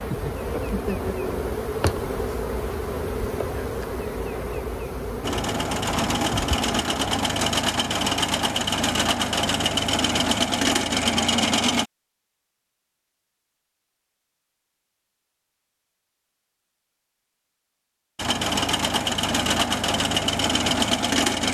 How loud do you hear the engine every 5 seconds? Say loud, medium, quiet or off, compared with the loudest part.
off, loud, loud, loud, loud.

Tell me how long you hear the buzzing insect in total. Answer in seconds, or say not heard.
7 s.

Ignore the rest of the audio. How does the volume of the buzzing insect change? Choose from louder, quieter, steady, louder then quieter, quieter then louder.
quieter.